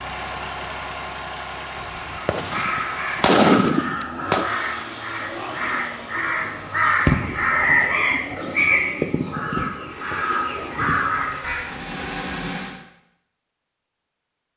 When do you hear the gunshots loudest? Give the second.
3 s.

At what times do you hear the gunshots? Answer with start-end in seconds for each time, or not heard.
1.8-4.5.